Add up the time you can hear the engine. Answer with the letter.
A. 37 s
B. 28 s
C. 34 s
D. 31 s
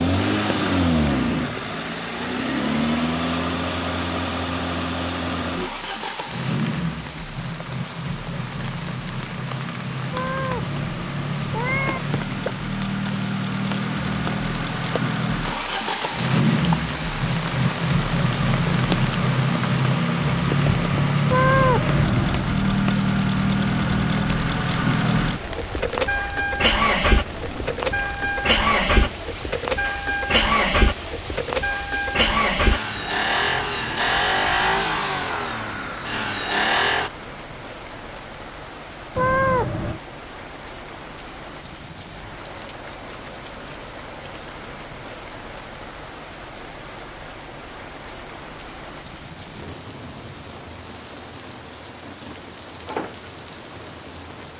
A.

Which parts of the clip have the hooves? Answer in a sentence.
The hooves can't be heard in this clip.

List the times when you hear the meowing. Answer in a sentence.
You can hear the meowing from 10.1 to 12.0 s, from 21.2 to 22.6 s and from 39.1 to 40.0 s.